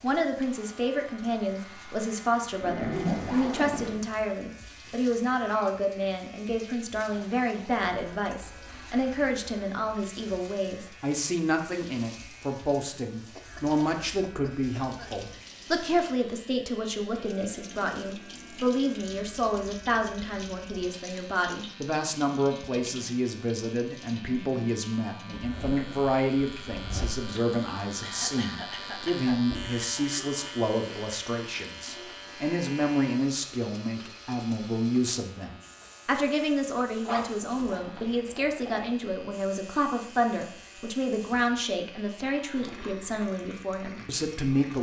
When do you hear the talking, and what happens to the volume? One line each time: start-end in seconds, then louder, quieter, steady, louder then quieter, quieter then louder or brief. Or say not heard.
0.0-44.7 steady.